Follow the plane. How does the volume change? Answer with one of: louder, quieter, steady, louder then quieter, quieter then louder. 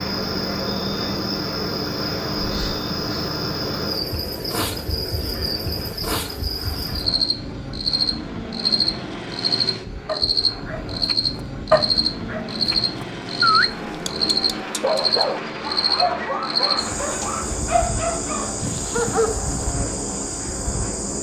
steady.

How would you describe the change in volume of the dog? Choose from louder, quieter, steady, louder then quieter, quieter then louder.
steady.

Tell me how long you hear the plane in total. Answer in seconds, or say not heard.
21 s.